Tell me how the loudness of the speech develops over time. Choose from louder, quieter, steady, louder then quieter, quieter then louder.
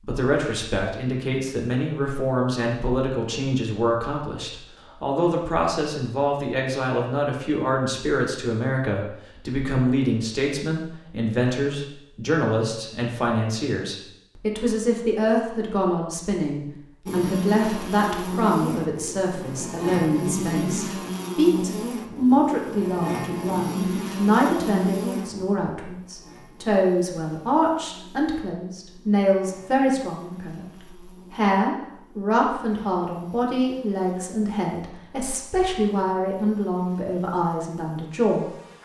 steady.